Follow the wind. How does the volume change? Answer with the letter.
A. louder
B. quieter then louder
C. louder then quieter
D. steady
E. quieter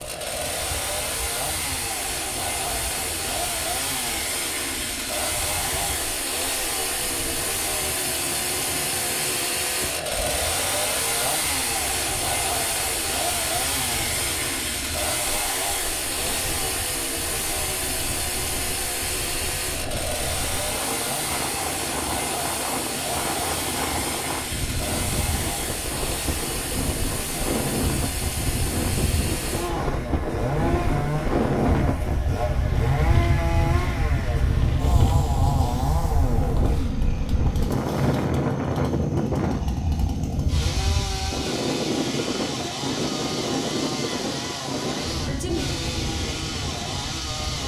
A.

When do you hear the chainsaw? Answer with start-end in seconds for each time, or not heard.
0.0-47.6.